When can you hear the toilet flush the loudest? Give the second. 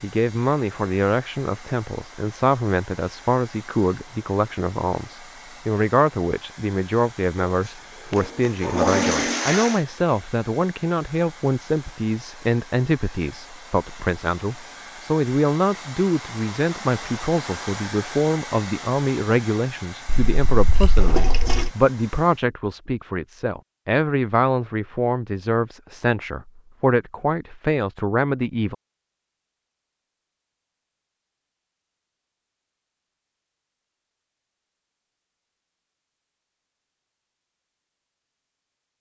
9 s.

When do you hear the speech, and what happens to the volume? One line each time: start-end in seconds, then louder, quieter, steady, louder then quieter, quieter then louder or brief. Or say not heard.
0.0-28.8 steady.